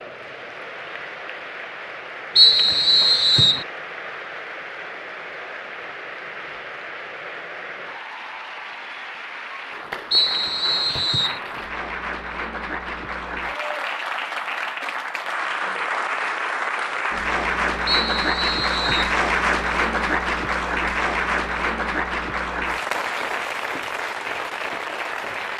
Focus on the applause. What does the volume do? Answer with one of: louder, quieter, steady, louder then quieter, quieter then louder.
louder.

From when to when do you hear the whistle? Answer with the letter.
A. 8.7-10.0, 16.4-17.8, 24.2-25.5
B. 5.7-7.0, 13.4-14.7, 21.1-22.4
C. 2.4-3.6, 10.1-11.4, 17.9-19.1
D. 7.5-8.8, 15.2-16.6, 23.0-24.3
C.